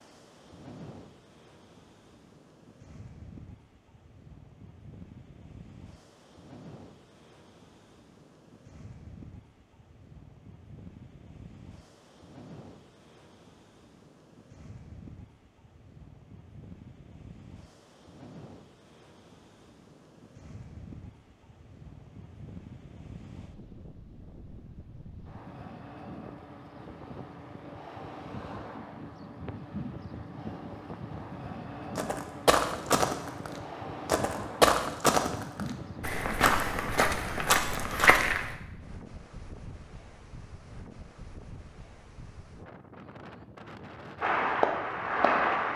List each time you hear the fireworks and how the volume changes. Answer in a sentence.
The fireworks can't be heard in this clip.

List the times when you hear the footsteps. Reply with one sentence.
You can hear the footsteps from 31.9 to 38.5 s.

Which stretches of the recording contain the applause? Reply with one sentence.
You can hear the applause from 44.2 to 45.7 s.